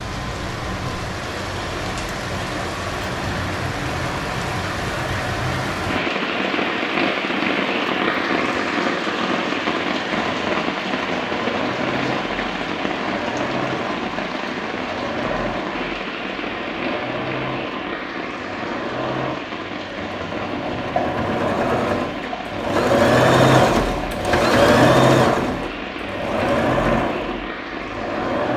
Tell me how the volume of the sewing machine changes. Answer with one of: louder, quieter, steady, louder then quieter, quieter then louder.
louder.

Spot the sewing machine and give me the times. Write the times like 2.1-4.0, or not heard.
10.1-28.5.